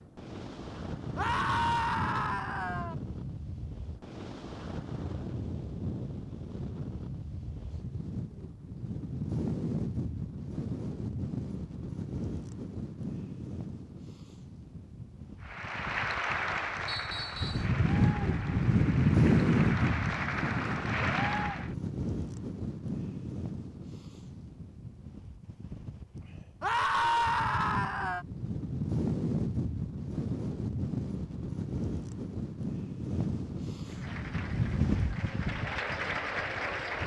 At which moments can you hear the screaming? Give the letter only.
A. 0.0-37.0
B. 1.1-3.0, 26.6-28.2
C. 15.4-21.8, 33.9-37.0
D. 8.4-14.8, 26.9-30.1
B.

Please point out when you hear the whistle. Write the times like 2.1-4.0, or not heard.
16.9-17.7.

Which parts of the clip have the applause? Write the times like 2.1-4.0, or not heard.
15.4-21.8, 33.9-37.0.